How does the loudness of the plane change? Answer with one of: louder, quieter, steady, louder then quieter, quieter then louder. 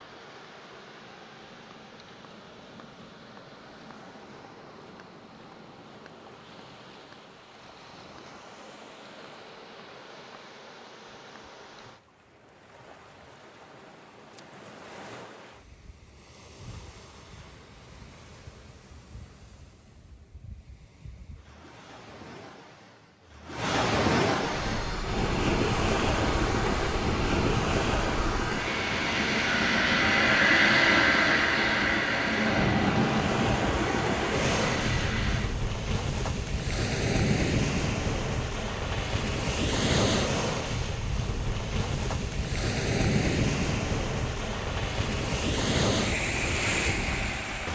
louder then quieter.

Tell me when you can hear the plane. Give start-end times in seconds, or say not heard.
24.6-35.5.